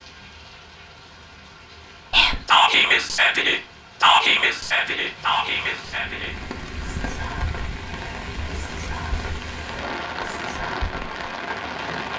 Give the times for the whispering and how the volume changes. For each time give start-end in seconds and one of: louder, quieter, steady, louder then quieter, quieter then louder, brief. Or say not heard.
2.1-11.2 quieter.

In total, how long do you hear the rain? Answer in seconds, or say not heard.
12 s.